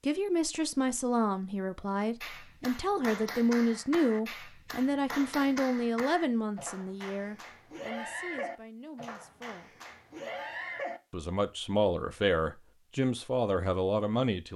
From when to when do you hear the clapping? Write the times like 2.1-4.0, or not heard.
2.2-11.0.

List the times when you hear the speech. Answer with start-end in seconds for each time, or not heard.
0.0-9.8, 11.1-14.5.